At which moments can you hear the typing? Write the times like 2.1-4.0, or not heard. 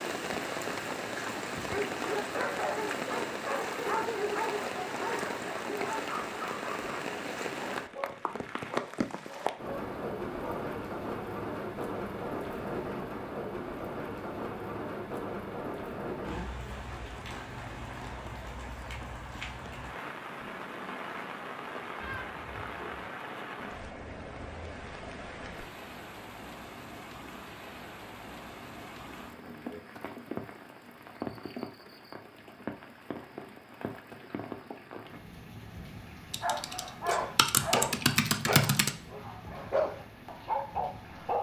36.3-38.9.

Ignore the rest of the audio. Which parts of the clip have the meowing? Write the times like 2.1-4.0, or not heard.
21.9-23.1.